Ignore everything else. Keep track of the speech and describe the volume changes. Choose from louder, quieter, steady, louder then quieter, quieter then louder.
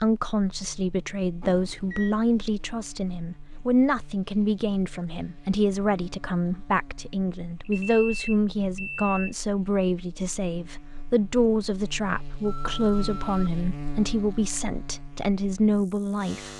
steady.